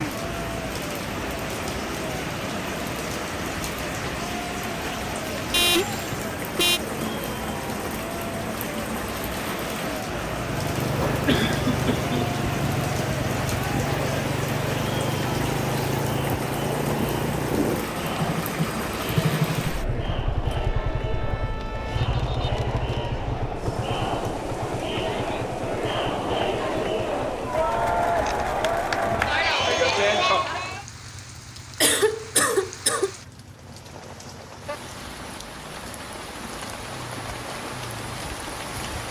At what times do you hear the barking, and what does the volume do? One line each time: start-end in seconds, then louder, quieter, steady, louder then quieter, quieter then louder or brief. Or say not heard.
not heard.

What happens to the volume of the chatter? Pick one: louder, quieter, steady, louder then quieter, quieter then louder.
louder.